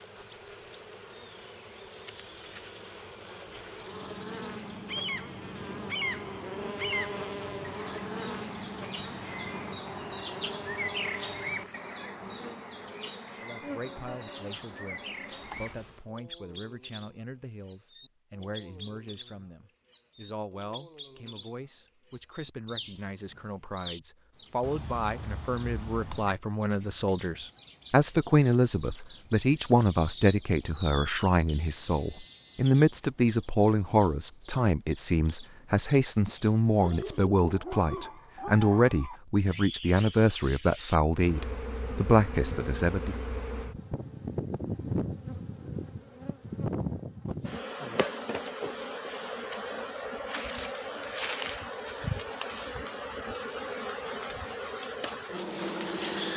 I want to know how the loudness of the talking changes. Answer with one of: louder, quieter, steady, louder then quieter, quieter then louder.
louder.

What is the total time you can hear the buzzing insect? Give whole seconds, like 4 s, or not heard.
31 s.